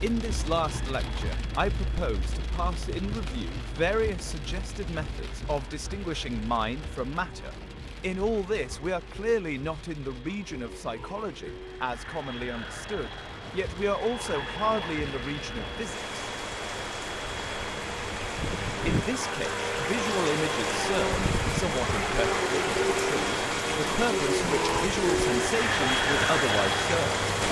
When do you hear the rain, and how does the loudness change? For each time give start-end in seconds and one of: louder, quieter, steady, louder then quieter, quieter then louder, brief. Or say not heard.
0.0-27.4 quieter then louder.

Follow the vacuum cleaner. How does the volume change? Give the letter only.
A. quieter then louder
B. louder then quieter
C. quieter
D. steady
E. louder
E.